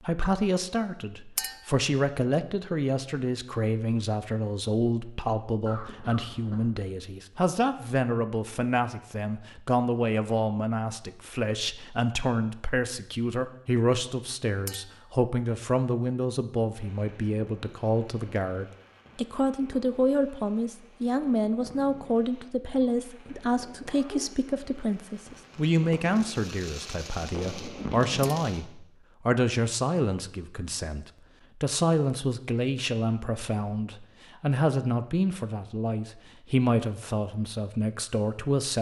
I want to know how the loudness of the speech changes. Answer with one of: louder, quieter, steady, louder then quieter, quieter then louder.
steady.